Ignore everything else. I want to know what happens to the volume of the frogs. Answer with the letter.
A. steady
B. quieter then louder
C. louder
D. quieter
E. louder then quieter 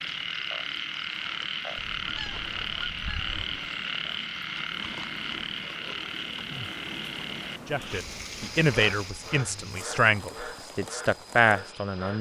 D.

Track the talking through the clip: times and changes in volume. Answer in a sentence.
You can hear the talking from 7.7 to 12.1 s, getting quieter then louder.